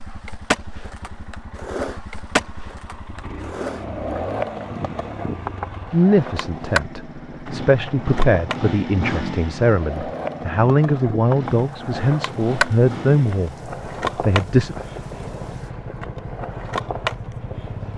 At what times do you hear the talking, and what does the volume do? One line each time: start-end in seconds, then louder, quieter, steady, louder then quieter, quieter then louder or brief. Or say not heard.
5.9-13.6 louder
14.2-14.8 brief.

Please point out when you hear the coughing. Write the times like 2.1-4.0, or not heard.
not heard.